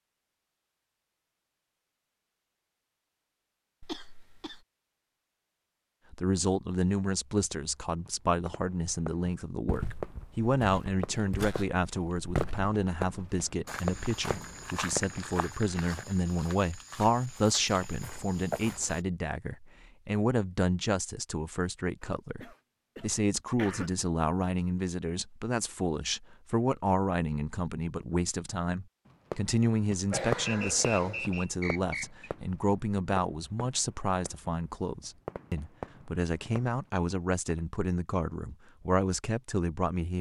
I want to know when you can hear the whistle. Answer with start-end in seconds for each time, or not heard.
30.4-32.2.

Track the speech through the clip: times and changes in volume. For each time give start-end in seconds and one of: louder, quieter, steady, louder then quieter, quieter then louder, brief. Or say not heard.
6.1-40.1 steady.